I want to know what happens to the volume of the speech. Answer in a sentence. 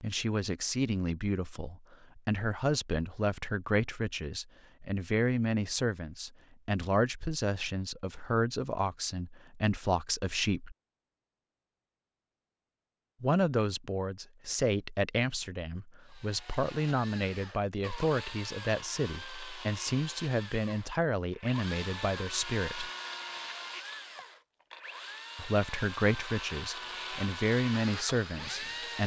The loudness of the speech stays about the same.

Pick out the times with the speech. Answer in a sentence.
You can hear the speech from 0.0 to 10.8 s, from 13.2 to 22.9 s and from 25.4 to 29.0 s.